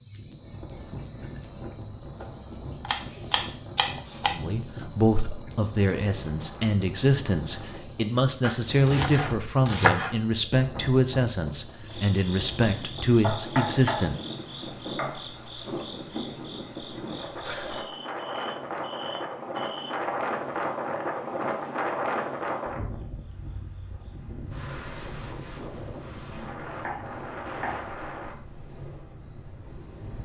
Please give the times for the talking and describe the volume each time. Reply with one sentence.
The talking can be heard from 4.3 to 14.2 s, at a steady volume.